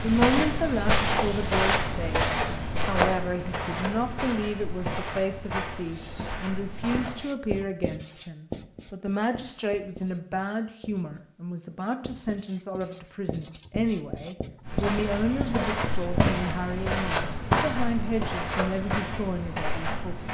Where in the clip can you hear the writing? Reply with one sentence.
You can hear the writing from 5.9 to 16.4 s.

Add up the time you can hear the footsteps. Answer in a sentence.
You can hear the footsteps for 13 seconds altogether.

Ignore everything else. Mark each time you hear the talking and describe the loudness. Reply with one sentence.
You can hear the talking from 0.0 to 20.2 s, at a steady volume.